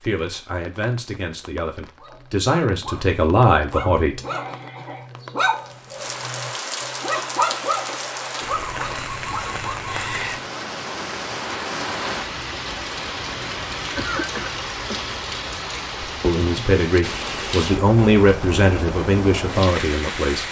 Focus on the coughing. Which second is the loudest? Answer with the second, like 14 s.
14 s.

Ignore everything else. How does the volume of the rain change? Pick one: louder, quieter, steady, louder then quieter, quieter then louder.
louder.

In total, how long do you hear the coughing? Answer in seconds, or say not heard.
2 s.